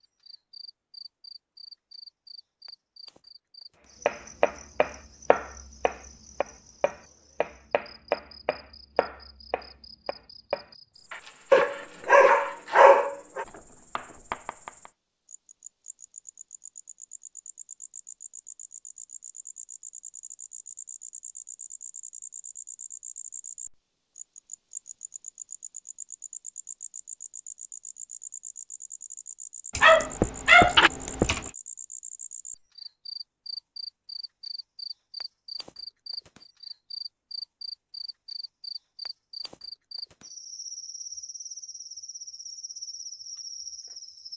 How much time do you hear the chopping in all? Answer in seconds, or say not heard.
11 s.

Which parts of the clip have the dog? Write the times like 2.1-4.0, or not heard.
11.5-13.4, 29.8-31.4.